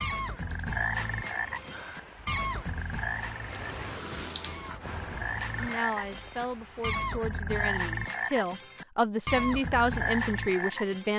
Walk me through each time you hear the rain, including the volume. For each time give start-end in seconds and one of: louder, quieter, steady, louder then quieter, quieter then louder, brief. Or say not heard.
0.1-6.9 louder then quieter.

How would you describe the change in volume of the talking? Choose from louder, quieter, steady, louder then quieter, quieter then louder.
louder.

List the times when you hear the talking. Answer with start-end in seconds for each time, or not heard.
5.5-11.1.